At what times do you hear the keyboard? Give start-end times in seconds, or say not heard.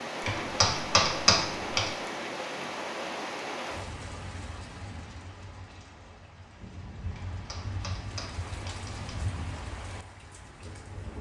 0.2-1.9, 7.2-9.1.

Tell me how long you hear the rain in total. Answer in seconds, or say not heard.
11 s.